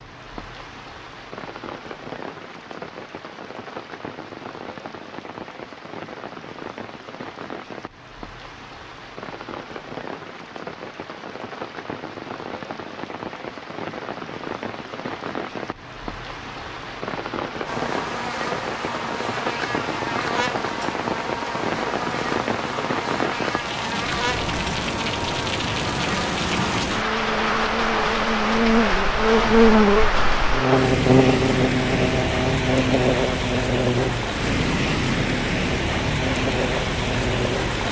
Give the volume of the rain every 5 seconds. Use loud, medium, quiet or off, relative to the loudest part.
quiet, quiet, medium, medium, loud, loud, loud, loud.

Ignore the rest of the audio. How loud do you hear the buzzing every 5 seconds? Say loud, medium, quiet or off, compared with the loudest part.
off, off, off, medium, medium, loud, loud, medium.